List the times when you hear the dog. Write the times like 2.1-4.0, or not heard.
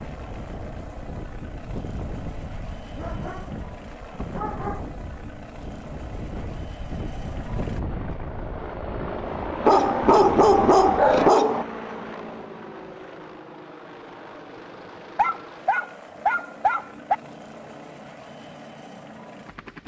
3.0-4.8, 9.7-11.7, 15.2-17.1.